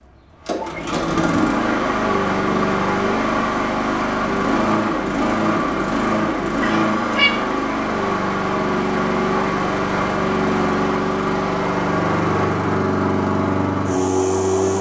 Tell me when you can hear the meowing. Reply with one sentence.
The meowing can be heard from 6.6 to 7.3 s.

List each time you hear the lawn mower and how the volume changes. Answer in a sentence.
You can hear the lawn mower from 0.3 to 14.7 s, at a steady volume.